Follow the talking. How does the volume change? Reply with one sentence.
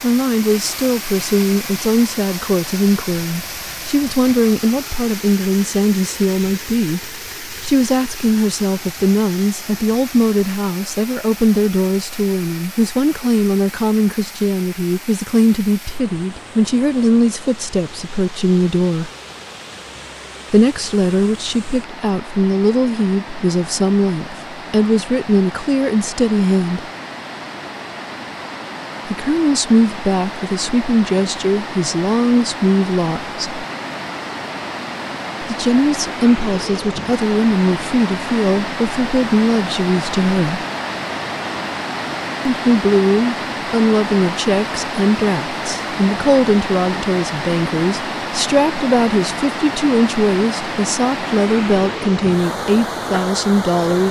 The volume of the talking stays about the same.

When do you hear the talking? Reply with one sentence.
You can hear the talking from 0.0 to 19.1 s, from 20.5 to 26.9 s, from 29.1 to 33.4 s, from 35.4 to 40.6 s and from 42.5 to 54.0 s.